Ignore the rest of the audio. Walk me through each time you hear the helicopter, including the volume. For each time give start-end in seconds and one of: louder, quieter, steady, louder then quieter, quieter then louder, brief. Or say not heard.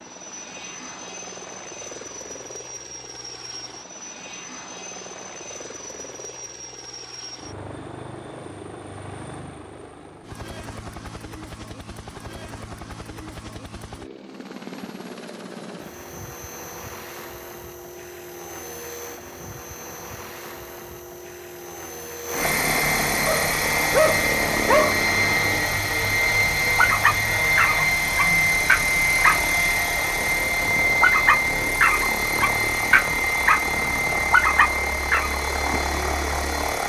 0.0-36.8 louder.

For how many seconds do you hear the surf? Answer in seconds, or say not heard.
not heard.